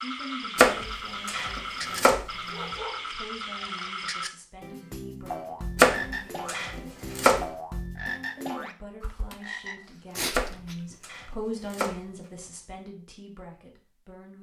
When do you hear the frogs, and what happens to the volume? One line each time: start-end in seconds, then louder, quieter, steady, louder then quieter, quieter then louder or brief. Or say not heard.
0.0-10.9 steady.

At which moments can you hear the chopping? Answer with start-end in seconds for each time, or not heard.
0.6-2.2, 5.8-7.5, 10.3-11.9.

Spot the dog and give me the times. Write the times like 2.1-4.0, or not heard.
2.5-3.6.